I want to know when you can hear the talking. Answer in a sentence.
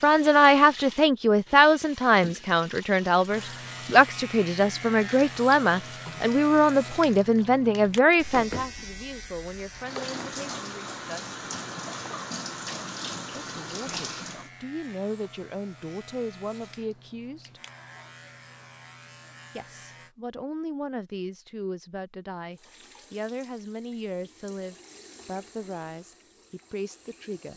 You can hear the talking from 0.0 to 11.3 s, from 13.3 to 17.6 s and from 19.6 to 27.5 s.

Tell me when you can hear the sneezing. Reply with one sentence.
The sneezing can't be heard in this clip.